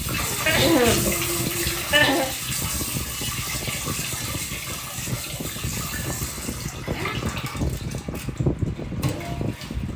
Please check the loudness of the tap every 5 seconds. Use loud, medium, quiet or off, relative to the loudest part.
loud, medium.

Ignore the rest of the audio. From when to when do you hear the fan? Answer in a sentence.
You can hear the fan from 0.0 to 9.9 s.